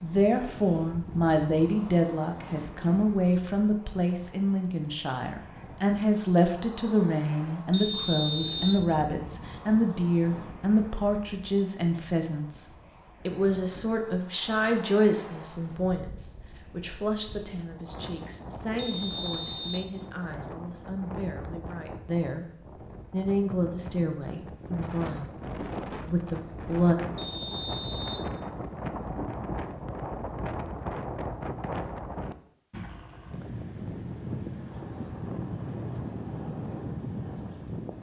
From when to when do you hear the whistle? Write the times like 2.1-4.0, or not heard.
7.7-8.8, 18.8-19.9, 27.1-28.3.